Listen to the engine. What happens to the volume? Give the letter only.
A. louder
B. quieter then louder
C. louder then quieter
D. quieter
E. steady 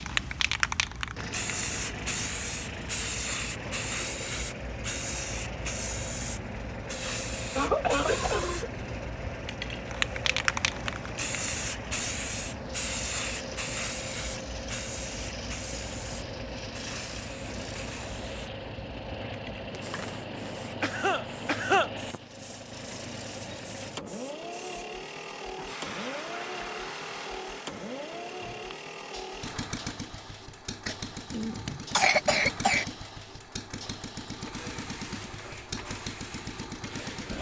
E.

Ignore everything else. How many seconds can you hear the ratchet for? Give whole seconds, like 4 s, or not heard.
not heard.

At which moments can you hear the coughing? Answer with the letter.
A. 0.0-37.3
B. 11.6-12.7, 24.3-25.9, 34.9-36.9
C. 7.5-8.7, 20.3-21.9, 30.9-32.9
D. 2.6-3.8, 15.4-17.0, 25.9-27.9
C.